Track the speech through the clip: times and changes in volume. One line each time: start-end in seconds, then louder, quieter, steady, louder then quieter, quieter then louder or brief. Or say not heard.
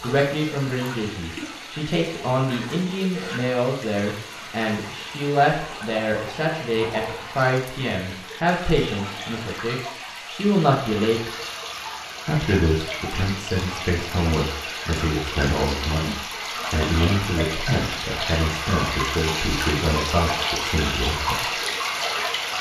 0.0-11.3 steady
12.2-21.6 steady.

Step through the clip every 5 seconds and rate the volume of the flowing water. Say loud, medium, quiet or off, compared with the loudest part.
medium, medium, medium, loud, loud.